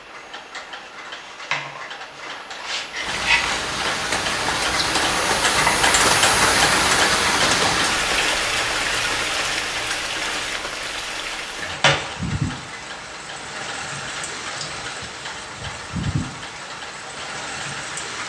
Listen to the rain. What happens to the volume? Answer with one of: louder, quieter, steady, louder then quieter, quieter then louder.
quieter.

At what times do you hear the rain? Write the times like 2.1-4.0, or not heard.
3.0-18.2.